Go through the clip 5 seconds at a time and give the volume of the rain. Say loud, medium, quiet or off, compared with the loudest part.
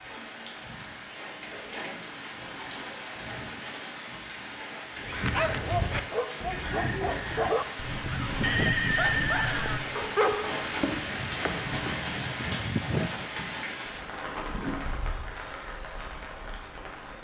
medium, loud, loud, medium.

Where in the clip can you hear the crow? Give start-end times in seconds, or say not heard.
5.0-11.2.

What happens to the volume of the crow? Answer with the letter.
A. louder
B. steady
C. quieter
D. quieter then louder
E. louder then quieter
C.